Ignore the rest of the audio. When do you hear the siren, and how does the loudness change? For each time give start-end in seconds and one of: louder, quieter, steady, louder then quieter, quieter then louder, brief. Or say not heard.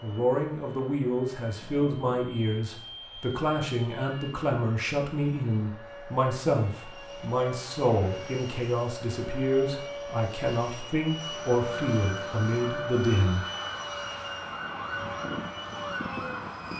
11.2-16.7 steady.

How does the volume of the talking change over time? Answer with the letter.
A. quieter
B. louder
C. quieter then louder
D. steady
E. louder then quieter
D.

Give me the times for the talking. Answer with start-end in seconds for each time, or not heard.
0.0-13.4.